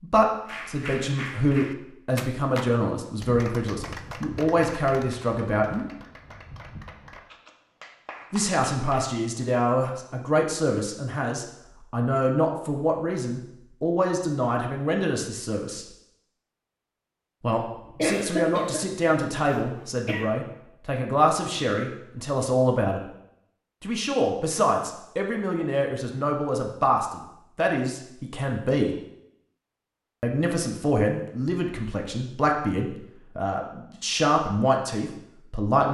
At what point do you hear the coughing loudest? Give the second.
18 s.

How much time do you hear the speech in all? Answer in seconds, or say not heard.
30 s.